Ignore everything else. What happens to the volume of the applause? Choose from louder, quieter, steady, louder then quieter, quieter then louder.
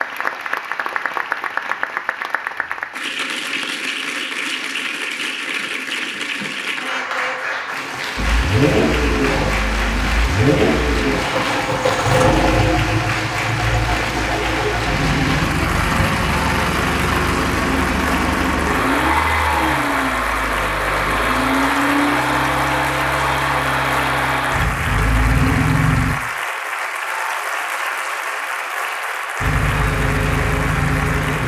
steady.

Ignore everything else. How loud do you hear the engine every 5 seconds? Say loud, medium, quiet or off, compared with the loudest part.
off, loud, loud, loud, loud, loud, loud.